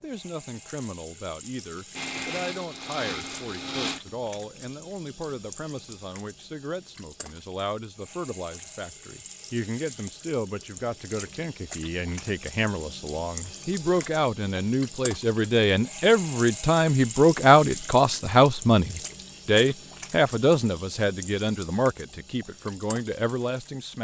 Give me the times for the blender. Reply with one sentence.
The blender can be heard from 1.9 to 4.2 s.